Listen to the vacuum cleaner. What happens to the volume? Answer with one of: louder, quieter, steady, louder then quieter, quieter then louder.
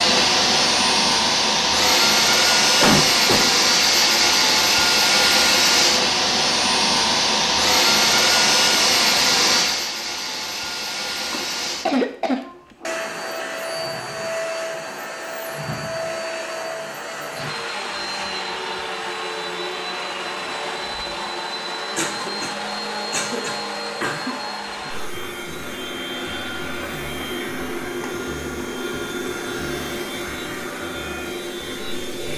quieter.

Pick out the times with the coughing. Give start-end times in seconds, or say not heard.
2.8-3.5, 11.3-13.0, 21.9-24.4.